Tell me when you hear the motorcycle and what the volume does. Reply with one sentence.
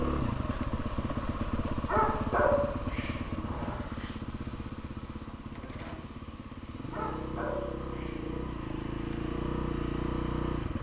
The motorcycle can be heard from 0.0 to 10.7 s, getting quieter then louder.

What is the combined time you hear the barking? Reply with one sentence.
The barking can be heard for 3 seconds in total.